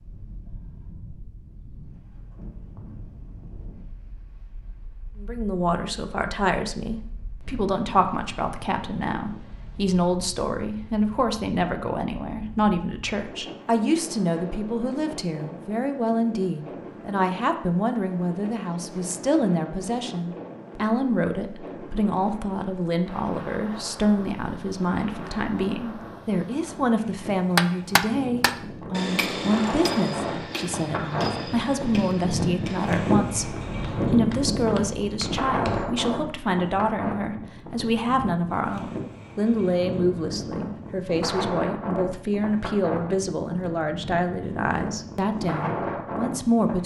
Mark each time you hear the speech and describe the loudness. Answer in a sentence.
You can hear the speech from 5.2 to 46.8 s, at a steady volume.